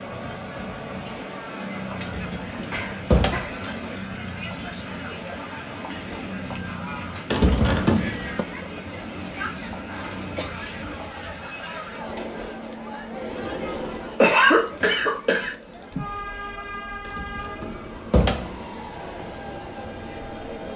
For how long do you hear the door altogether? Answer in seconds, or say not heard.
4 s.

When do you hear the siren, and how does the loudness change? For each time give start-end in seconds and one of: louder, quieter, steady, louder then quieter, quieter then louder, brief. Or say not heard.
not heard.